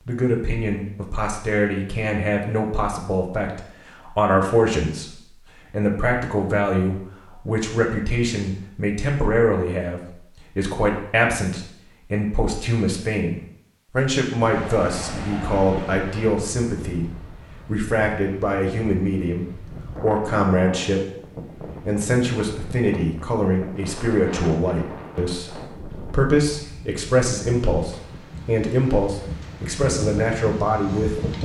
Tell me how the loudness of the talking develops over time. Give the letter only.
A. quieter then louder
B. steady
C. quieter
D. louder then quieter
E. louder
B.